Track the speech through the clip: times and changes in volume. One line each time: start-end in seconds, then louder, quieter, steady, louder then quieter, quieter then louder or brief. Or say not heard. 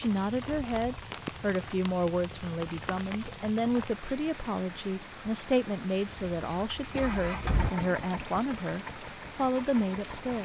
0.0-10.4 steady.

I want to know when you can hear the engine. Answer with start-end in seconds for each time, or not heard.
6.0-10.4.